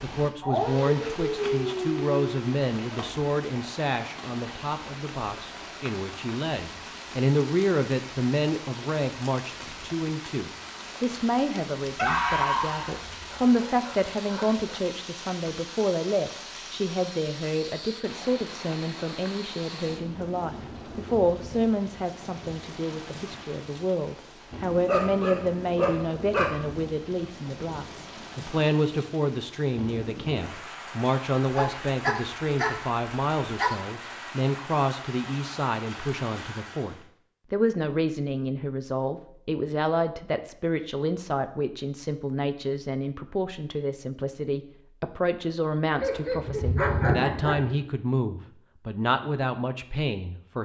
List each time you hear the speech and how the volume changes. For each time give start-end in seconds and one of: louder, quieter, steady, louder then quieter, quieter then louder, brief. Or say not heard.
0.0-50.6 steady.